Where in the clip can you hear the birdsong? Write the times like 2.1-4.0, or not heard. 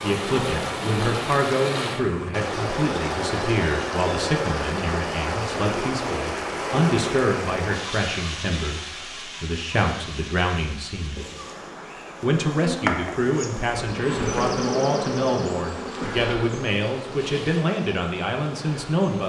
not heard.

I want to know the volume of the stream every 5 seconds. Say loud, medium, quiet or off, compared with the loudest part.
loud, loud, quiet, quiet.